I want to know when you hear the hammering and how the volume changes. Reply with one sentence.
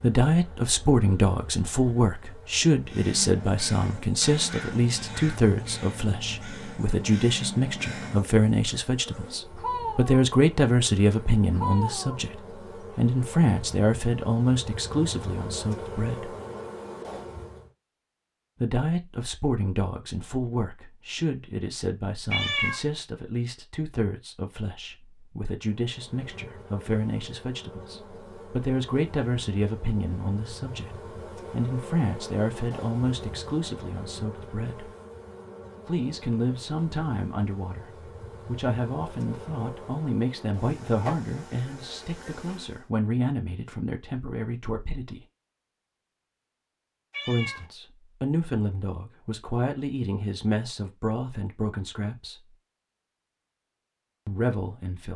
The hammering can't be heard in this clip.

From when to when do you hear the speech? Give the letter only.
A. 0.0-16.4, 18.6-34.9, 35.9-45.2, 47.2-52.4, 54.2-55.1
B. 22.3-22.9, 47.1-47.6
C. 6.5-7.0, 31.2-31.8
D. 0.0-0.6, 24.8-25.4
A.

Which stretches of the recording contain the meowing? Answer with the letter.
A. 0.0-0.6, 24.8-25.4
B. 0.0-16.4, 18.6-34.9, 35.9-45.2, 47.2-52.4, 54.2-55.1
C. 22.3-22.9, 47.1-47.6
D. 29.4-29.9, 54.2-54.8
C.